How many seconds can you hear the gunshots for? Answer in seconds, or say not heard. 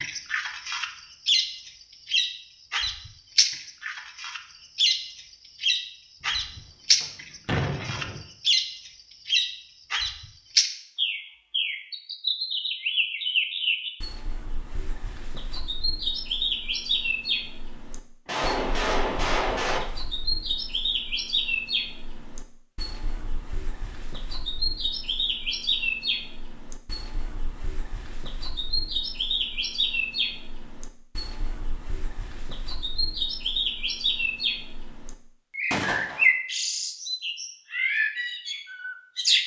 4 s.